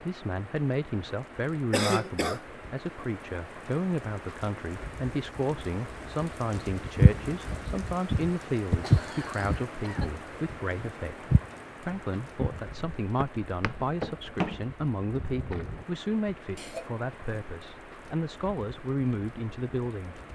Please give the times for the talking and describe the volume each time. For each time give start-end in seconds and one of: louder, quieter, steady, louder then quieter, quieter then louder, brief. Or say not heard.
0.0-20.2 steady.